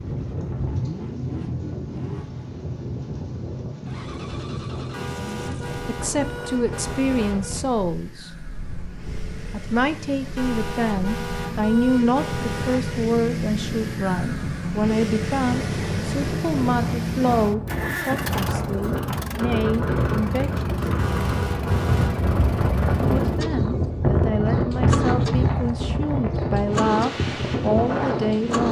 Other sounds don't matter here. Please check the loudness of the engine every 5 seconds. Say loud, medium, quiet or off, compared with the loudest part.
medium, quiet, loud, loud, loud, loud.